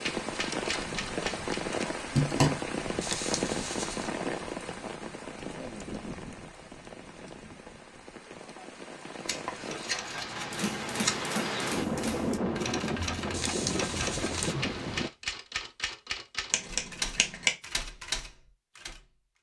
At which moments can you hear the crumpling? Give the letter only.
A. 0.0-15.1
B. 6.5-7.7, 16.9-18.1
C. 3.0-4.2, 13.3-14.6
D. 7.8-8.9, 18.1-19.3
C.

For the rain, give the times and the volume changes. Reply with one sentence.
The rain can be heard from 0.0 to 15.1 s, getting quieter then louder.